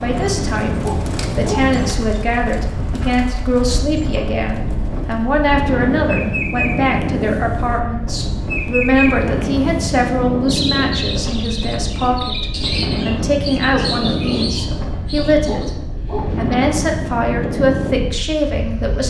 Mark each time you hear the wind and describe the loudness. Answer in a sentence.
You can hear the wind from 0.0 to 19.0 s, at a steady volume.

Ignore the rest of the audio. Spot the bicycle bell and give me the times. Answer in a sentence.
You can't hear the bicycle bell here.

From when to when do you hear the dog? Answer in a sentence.
You can hear the dog from 0.8 to 1.7 s and from 15.4 to 16.6 s.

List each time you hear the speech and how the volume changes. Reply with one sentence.
You can hear the speech from 0.0 to 19.0 s, at a steady volume.